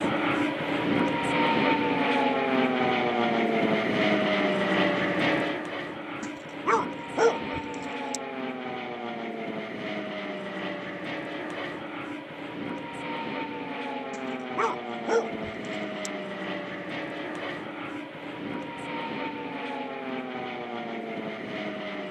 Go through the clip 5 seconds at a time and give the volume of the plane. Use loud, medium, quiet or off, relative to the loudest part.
loud, medium, medium, medium, medium.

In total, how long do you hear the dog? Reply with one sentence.
The dog can be heard for 4 seconds in total.